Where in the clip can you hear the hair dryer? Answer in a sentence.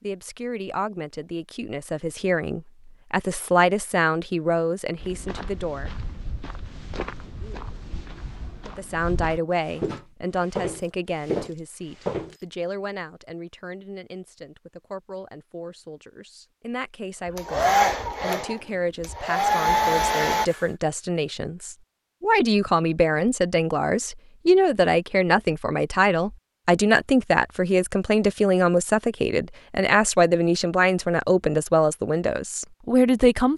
You can hear the hair dryer from 17.4 to 20.6 s.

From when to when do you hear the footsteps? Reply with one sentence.
You can hear the footsteps from 5.0 to 12.4 s.